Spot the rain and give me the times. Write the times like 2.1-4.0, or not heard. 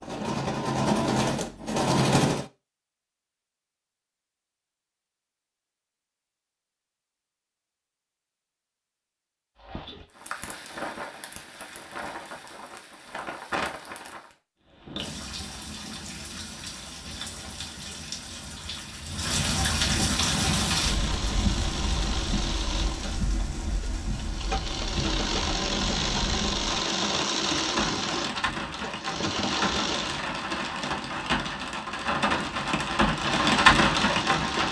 9.6-34.6.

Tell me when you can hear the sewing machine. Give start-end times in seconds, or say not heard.
0.0-2.5, 20.2-30.2, 33.1-34.6.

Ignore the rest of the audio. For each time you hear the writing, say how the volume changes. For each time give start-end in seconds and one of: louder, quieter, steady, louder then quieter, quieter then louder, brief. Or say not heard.
not heard.